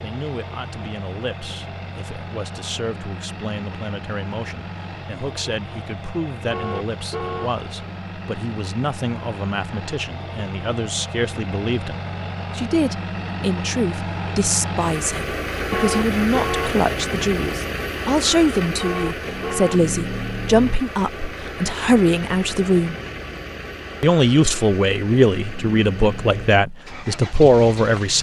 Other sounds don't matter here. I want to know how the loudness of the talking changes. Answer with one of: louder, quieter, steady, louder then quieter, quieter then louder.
louder.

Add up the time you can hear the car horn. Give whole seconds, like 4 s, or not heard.
3 s.